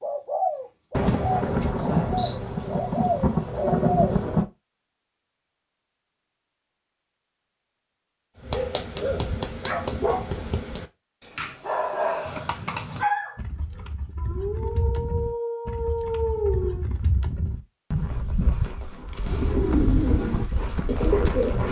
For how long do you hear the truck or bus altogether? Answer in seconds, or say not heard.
not heard.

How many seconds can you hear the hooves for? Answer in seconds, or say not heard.
9 s.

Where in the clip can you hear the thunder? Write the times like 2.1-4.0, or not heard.
0.9-4.5.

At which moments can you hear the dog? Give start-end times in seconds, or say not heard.
8.4-16.9.